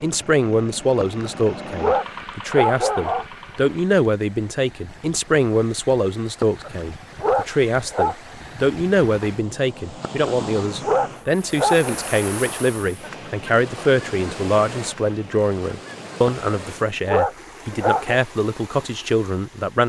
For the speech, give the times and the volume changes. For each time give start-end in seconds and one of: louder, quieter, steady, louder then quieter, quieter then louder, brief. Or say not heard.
0.0-19.8 steady.